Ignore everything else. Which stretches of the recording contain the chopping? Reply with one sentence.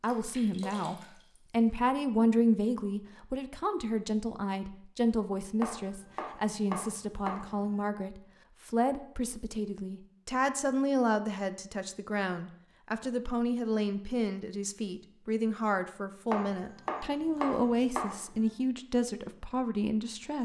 You can hear the chopping from 5.6 to 7.8 s and from 16.3 to 18.5 s.